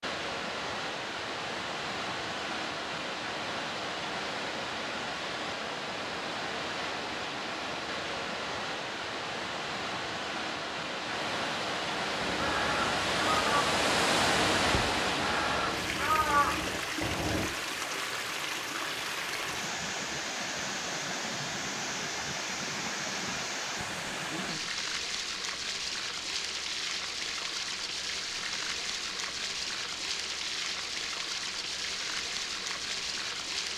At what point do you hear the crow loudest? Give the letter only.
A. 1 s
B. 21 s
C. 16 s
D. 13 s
C.